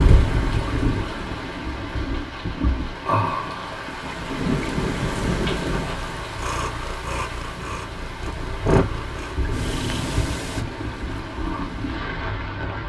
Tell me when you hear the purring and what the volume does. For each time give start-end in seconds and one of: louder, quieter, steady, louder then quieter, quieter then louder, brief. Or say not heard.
4.3-10.7 louder then quieter.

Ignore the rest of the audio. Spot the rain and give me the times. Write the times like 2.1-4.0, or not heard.
0.0-12.8.